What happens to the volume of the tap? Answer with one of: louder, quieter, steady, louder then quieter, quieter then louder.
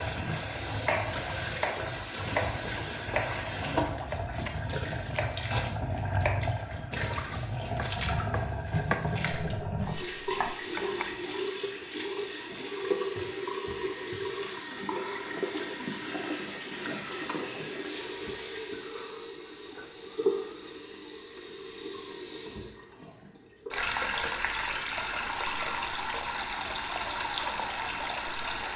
steady.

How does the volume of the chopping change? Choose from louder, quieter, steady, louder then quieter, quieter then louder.
quieter.